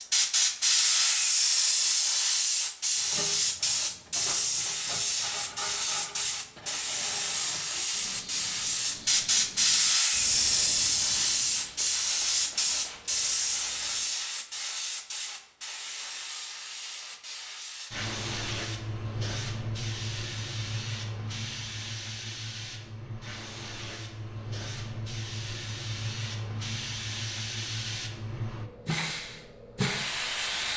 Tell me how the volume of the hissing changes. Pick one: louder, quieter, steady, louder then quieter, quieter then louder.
quieter.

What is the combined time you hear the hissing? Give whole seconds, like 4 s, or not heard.
31 s.